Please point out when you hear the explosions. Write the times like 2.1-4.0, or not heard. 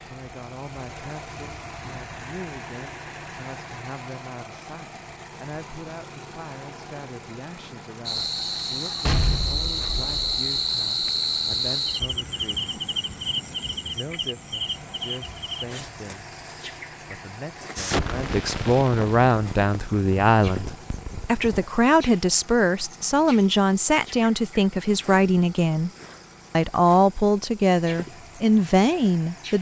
9.1-10.4, 17.8-21.6.